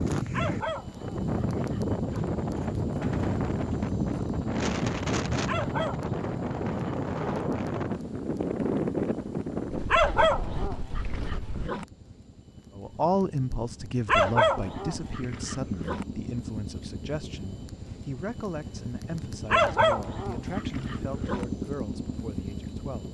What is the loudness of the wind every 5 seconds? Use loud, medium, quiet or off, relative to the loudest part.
loud, loud, medium, off, off.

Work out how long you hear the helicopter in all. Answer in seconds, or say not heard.
23 s.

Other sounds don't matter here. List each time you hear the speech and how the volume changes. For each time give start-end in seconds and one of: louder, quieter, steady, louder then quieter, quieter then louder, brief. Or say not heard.
12.8-23.1 quieter.